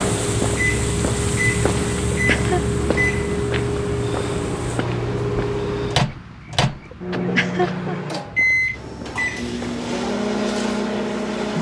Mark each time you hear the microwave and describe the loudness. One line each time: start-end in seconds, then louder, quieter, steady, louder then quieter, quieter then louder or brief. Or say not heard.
0.0-11.5 steady.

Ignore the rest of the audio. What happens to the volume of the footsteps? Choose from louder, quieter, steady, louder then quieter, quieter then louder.
quieter.